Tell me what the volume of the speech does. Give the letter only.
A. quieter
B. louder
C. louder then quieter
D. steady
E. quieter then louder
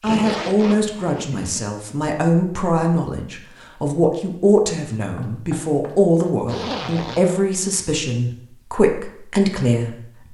D.